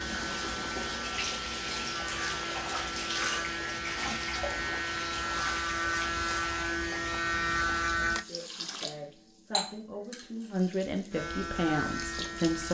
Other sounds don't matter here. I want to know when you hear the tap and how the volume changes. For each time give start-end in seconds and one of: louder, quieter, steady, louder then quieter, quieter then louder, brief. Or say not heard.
0.0-12.7 quieter.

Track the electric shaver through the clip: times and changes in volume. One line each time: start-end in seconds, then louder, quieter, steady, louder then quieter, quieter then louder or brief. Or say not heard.
0.0-8.2 louder
11.1-12.7 brief.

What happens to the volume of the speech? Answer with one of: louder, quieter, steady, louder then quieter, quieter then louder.
louder.